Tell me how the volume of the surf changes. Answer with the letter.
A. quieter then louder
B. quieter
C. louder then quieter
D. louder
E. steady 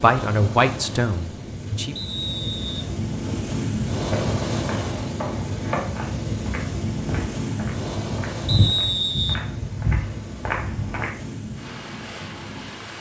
C.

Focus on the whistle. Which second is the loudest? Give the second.
9 s.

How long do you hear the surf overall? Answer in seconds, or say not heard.
13 s.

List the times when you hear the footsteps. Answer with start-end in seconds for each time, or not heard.
4.1-11.1.